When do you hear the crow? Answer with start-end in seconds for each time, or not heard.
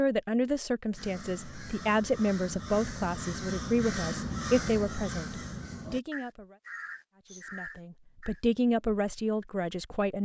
0.9-8.4.